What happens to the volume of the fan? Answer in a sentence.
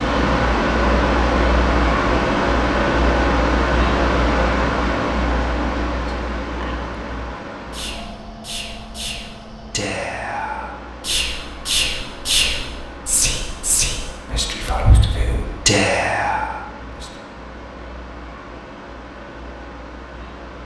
The loudness of the fan goes down.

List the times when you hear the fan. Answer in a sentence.
You can hear the fan from 0.0 to 20.6 s.